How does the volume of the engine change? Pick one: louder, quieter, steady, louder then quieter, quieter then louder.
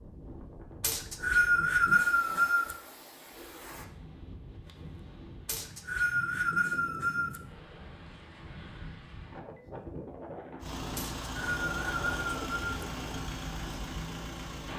steady.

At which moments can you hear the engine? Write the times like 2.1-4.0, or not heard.
10.6-14.7.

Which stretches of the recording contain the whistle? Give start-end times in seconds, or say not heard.
0.8-2.8, 5.5-7.4, 10.9-12.6.